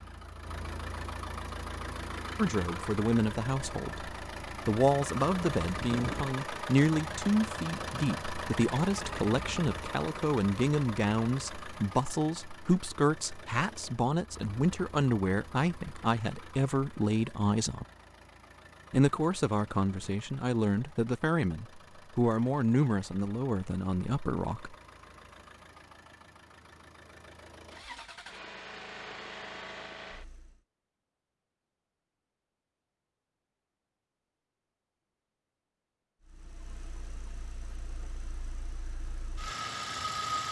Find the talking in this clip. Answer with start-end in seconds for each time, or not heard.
2.4-17.9, 18.9-24.8.